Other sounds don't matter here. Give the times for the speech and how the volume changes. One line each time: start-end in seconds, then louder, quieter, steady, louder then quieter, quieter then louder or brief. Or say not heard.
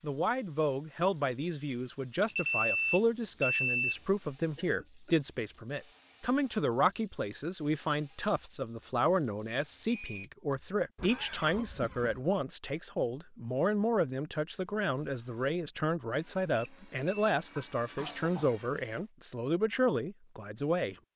0.0-20.9 steady.